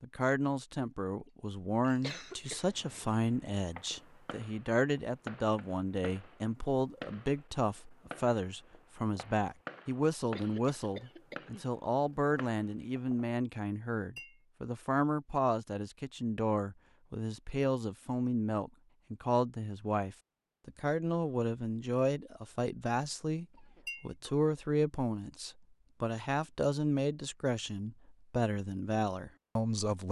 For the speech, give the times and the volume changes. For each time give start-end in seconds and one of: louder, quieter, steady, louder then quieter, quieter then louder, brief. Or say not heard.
0.0-30.0 steady.